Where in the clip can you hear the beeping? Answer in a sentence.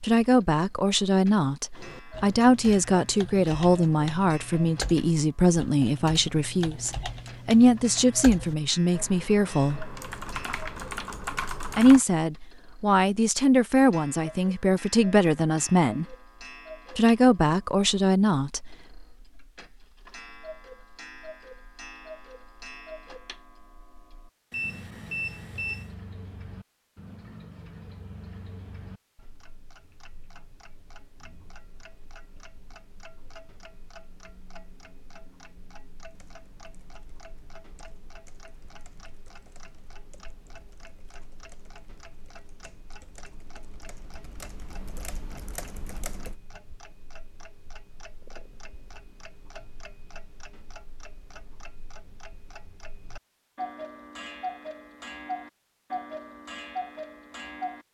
The beeping can be heard from 24.5 to 25.9 s.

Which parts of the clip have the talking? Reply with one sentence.
You can hear the talking from 0.0 to 9.9 s, from 11.8 to 16.1 s and from 16.9 to 18.8 s.